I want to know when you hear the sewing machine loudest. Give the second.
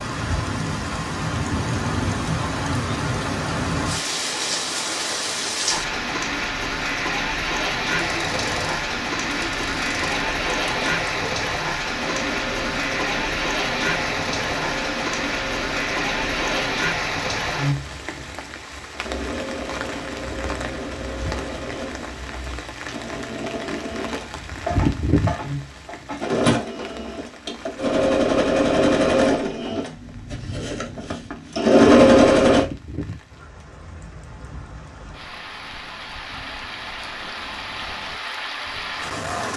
32 s.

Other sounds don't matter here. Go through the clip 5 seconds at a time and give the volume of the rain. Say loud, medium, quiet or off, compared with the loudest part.
loud, loud, loud, loud, medium, medium, quiet, medium.